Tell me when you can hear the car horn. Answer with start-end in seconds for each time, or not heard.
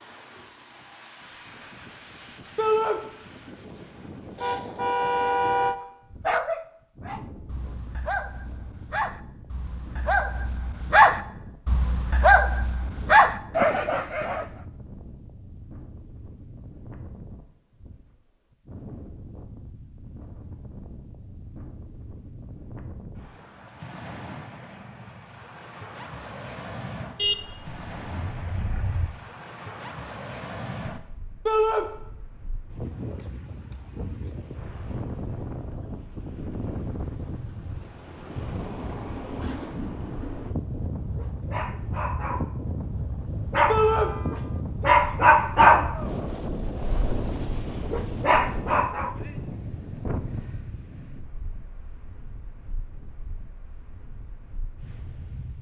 4.3-5.8, 27.1-29.1, 43.8-44.6.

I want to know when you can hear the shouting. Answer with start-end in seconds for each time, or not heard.
2.5-3.0, 31.4-31.9, 43.6-44.1.